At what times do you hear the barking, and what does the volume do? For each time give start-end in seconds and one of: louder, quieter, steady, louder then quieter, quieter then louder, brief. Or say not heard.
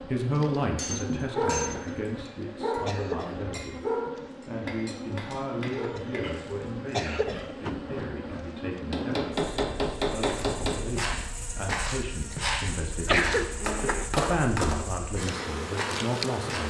1.1-7.5 quieter.